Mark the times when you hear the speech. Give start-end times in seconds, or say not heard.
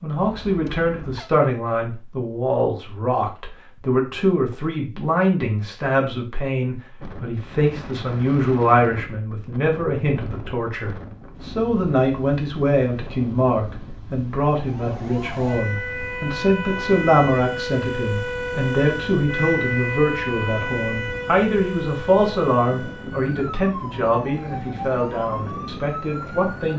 0.0-26.7.